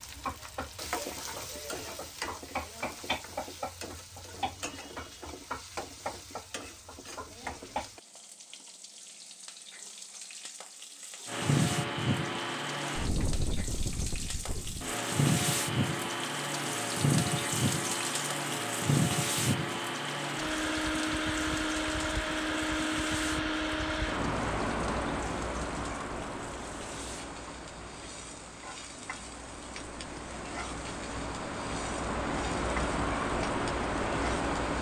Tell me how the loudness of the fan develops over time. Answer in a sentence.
The loudness of the fan goes down, then up.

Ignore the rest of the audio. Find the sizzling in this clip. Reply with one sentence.
The sizzling can be heard from 0.0 to 34.7 s.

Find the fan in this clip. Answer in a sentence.
The fan can be heard from 11.2 to 34.7 s.